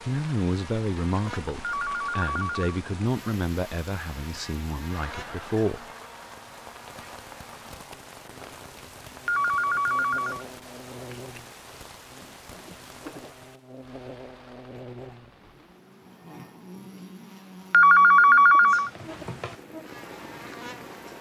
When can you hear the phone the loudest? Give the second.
18 s.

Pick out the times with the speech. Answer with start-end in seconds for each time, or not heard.
0.0-5.8.